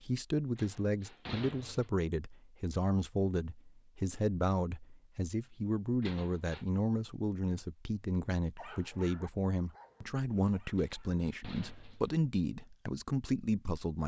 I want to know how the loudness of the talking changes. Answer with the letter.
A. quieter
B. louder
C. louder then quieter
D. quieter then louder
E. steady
E.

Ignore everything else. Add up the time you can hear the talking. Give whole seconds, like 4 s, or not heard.
14 s.